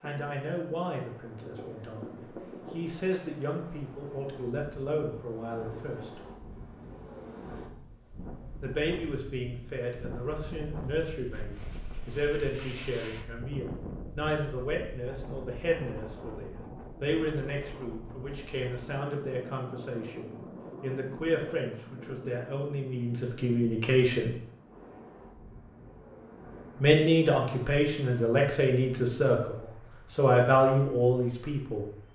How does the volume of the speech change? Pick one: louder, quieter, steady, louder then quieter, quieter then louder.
louder.